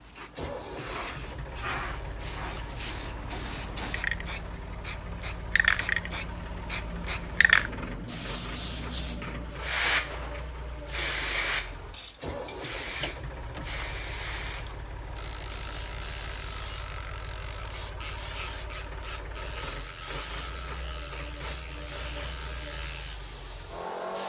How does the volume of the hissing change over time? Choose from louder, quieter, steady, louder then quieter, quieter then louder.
louder then quieter.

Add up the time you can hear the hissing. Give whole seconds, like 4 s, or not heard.
24 s.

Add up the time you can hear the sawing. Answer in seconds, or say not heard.
not heard.